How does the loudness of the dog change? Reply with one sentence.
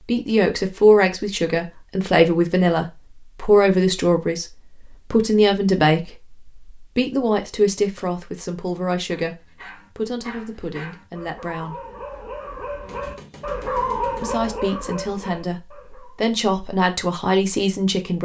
The volume of the dog goes up, then down.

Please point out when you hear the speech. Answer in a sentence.
You can hear the speech from 0.0 to 11.8 s and from 14.2 to 18.1 s.